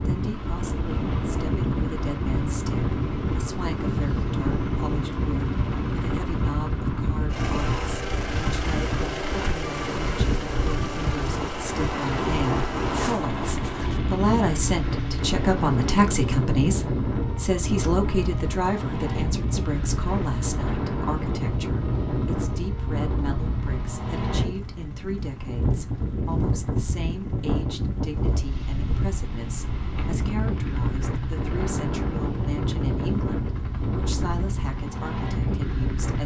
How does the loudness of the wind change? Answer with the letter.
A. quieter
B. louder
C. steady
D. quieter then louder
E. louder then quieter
C.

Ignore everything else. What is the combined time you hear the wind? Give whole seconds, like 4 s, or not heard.
36 s.